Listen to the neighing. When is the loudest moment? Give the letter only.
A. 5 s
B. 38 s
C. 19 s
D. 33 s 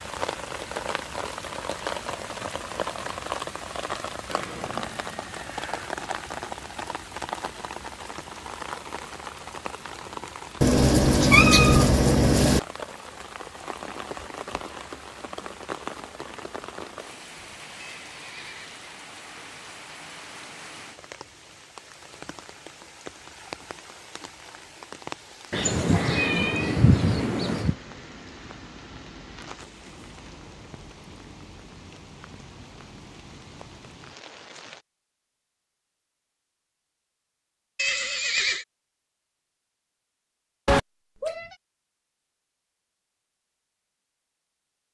B.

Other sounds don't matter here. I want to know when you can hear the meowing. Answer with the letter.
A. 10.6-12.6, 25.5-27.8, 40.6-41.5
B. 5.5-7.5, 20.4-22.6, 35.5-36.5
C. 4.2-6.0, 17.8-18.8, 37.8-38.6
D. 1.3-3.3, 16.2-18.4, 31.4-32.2
A.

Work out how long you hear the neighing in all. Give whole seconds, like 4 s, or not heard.
4 s.